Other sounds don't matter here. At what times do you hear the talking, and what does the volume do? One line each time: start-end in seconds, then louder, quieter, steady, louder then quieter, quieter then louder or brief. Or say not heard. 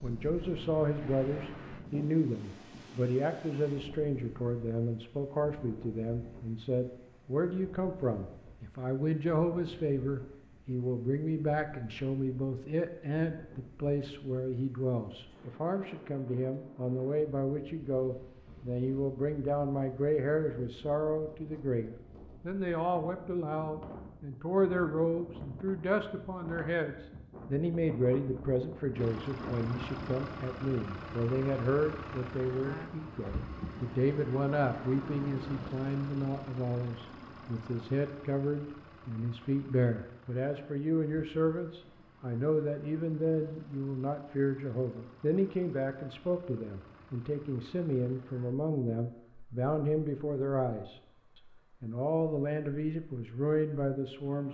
0.0-54.4 steady.